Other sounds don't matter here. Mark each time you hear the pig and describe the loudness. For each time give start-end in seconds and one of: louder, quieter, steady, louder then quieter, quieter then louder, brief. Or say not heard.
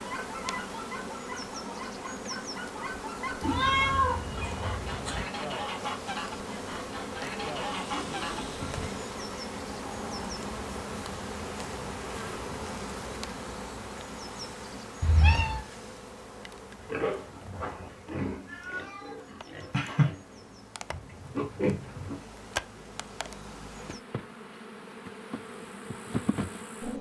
16.7-22.2 quieter then louder.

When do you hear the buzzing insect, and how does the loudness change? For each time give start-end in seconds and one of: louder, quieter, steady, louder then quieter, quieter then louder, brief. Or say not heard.
0.0-26.9 quieter then louder.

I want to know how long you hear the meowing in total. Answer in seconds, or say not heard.
4 s.